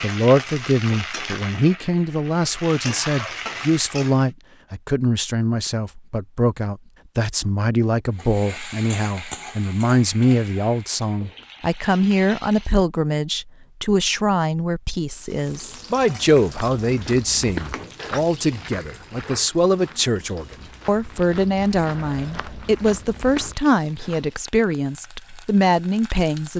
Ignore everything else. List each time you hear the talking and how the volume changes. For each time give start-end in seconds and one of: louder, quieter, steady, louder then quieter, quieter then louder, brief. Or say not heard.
0.0-26.5 steady.